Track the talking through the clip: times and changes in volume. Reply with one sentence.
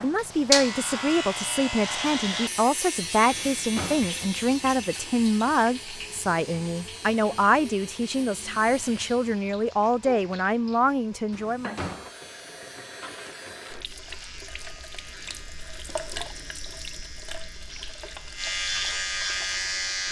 The talking can be heard from 0.0 to 11.8 s, at a steady volume.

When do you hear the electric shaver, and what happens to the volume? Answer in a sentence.
The electric shaver can be heard from 0.0 to 9.4 s, getting quieter; and from 11.4 to 20.0 s, getting louder.